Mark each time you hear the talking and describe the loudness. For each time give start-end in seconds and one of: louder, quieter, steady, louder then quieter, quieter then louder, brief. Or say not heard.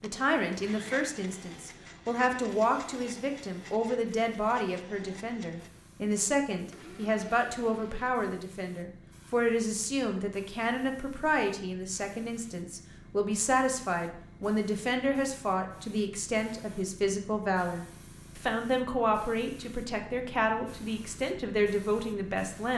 0.0-22.7 steady.